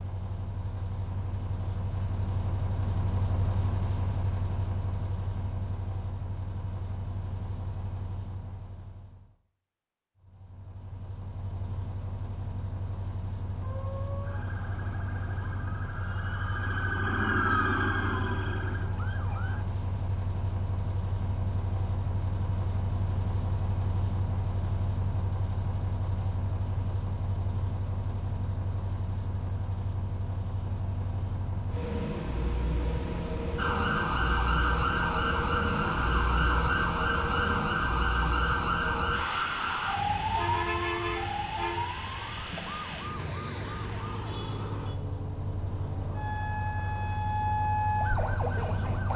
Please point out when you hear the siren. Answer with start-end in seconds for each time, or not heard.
13.6-19.6, 33.5-49.1.